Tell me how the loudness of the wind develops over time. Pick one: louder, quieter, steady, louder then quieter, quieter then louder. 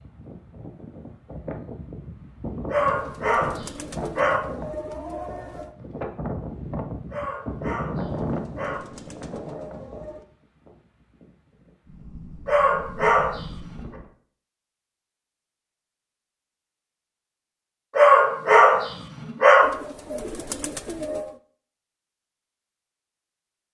louder then quieter.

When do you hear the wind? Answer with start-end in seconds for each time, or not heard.
0.0-14.1.